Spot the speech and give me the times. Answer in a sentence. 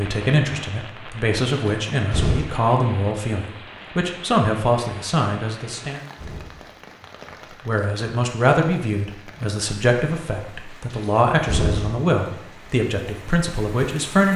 The speech can be heard from 0.0 to 6.0 s and from 7.7 to 14.3 s.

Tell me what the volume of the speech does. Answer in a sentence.
The volume of the speech stays about the same.